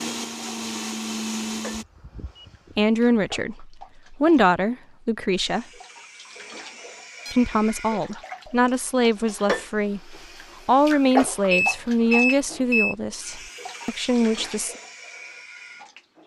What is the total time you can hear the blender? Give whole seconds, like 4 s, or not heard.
2 s.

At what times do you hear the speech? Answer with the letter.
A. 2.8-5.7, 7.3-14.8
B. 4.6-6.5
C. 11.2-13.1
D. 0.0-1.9
A.